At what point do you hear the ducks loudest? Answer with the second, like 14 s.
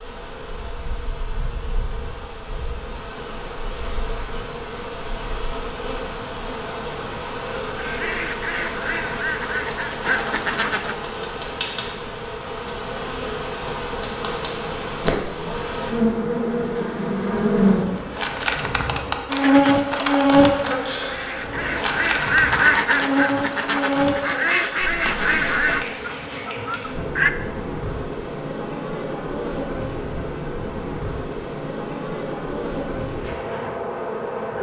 23 s.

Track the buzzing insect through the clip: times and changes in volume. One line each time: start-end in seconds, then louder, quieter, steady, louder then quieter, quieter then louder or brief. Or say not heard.
0.0-34.5 louder then quieter.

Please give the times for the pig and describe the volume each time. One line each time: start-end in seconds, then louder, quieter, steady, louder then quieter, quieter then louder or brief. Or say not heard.
not heard.